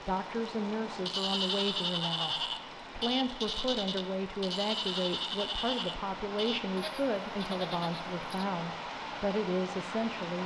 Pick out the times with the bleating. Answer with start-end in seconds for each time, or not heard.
1.0-8.4.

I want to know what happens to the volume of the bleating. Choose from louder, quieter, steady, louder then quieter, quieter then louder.
quieter.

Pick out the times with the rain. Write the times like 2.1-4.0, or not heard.
0.0-10.4.